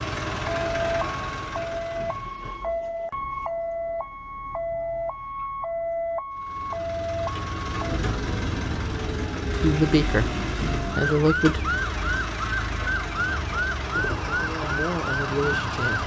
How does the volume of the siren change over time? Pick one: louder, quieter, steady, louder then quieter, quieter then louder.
steady.